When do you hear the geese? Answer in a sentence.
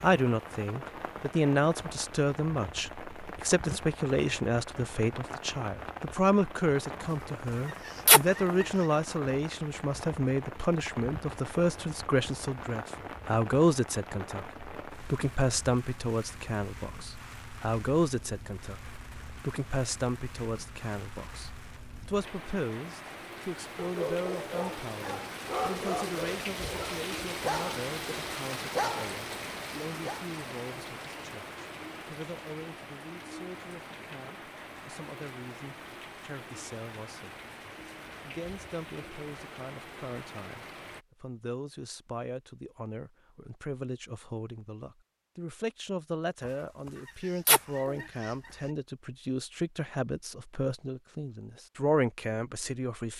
The geese can be heard from 7.0 to 8.7 s and from 46.5 to 48.3 s.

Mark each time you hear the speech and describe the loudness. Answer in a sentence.
You can hear the speech from 0.0 to 53.1 s, getting quieter then louder.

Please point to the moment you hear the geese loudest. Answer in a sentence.
The volume of the geese peaks at 8 seconds.